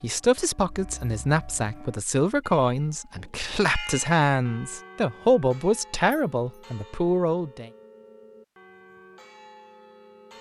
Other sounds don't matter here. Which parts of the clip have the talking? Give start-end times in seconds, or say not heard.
0.0-7.7.